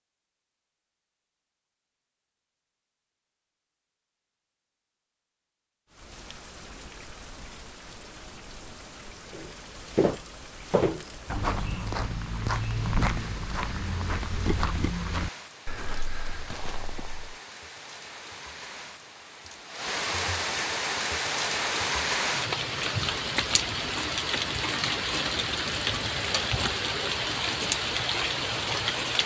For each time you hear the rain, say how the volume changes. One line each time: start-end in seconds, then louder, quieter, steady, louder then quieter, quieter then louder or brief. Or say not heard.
5.8-29.2 louder.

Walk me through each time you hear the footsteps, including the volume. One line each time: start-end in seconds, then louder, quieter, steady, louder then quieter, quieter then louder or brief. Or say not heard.
9.3-17.4 quieter.